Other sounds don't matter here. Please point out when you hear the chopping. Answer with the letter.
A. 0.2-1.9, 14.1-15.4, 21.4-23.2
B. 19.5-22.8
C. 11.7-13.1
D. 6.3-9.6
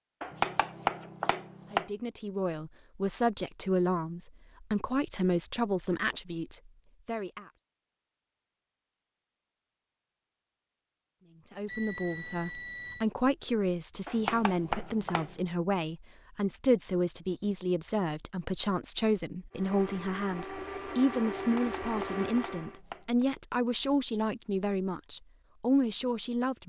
A.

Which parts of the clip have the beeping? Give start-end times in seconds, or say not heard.
11.7-13.1.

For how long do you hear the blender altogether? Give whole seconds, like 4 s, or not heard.
3 s.